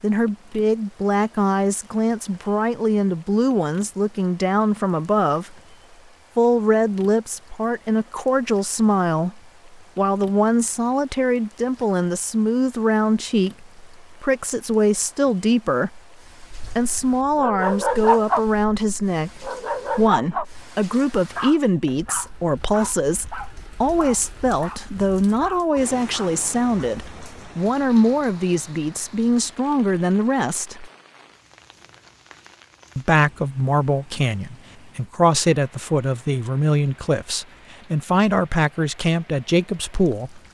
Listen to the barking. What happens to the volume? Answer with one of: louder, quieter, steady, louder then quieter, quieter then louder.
quieter.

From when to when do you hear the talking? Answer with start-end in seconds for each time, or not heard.
0.0-5.5, 6.3-30.9, 33.0-40.4.